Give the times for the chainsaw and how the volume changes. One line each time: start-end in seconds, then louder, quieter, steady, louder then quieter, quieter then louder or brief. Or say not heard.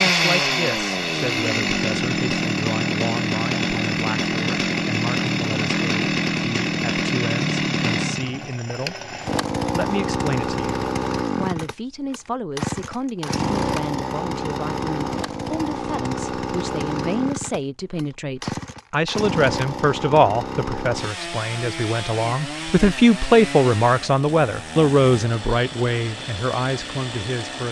0.0-27.6 quieter.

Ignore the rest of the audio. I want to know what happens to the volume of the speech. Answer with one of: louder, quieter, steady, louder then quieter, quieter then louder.
louder.